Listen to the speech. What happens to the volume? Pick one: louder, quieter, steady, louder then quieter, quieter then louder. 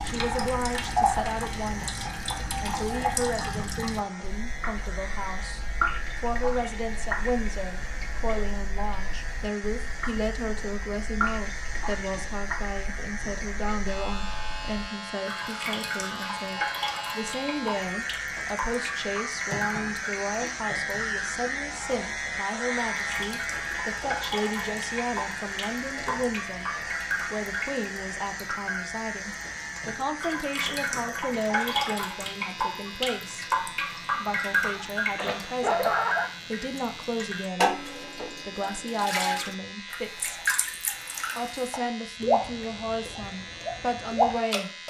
steady.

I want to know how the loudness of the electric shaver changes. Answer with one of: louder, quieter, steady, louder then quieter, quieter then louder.
louder then quieter.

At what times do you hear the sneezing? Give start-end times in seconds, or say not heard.
34.3-36.2.